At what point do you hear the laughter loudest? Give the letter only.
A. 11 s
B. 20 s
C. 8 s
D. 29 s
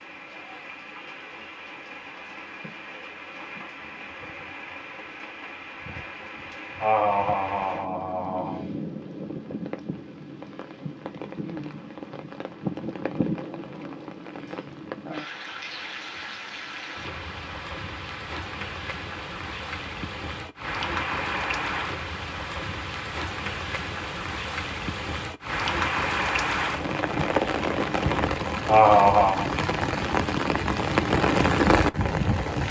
D.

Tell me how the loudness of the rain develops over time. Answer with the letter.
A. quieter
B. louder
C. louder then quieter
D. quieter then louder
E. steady
B.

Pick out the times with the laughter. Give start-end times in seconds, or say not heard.
6.8-8.7, 28.6-29.5.